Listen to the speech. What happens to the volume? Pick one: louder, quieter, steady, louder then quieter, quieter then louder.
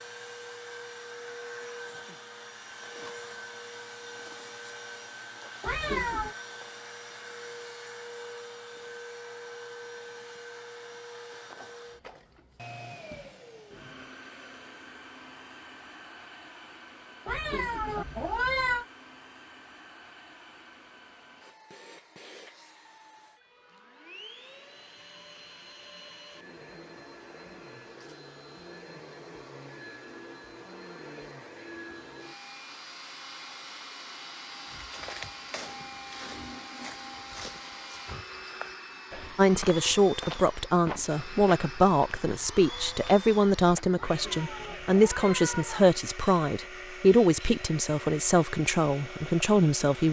steady.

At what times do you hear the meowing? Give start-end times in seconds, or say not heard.
5.6-6.3, 17.2-18.9, 44.0-46.0.